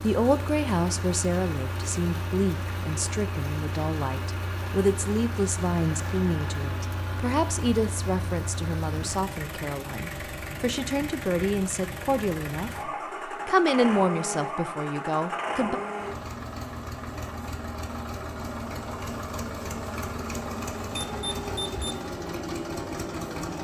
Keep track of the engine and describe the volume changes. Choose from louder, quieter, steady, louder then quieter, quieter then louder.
steady.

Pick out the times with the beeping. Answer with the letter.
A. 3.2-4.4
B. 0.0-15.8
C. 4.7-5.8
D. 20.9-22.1
D.